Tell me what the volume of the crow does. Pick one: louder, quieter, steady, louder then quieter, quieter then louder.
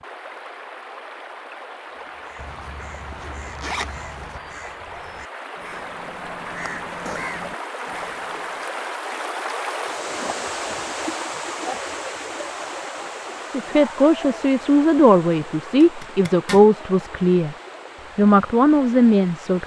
louder.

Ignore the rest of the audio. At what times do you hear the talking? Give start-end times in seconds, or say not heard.
13.5-17.6, 18.1-19.6.